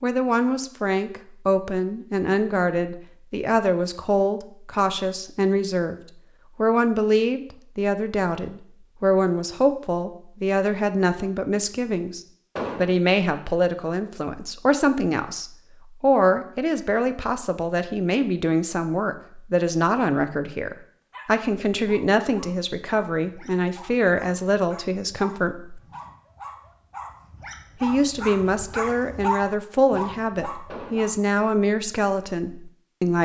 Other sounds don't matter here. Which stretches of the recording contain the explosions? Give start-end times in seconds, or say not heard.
12.6-13.0, 30.6-31.1.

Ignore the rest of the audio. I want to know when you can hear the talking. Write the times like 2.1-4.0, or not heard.
0.0-6.0, 6.5-25.8, 27.8-33.2.